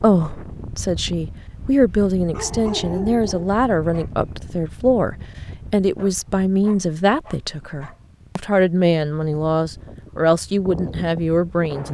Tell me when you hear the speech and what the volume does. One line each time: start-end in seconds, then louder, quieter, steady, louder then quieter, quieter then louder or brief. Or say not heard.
0.0-11.8 steady.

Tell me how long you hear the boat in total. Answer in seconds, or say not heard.
not heard.